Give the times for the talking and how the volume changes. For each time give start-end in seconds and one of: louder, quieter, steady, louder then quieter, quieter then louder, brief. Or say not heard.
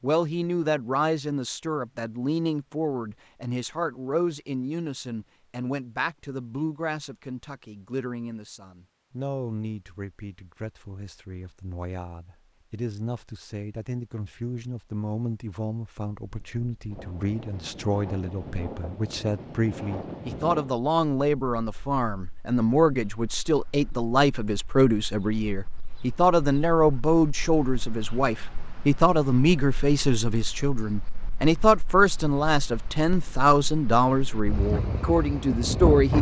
0.0-36.1 quieter then louder.